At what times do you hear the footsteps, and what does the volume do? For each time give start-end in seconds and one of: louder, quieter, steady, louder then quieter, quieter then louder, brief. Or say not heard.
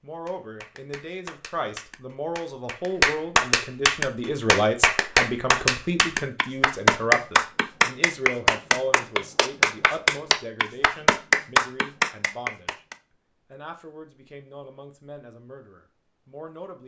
not heard.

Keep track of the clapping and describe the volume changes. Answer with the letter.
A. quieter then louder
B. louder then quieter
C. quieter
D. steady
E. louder
E.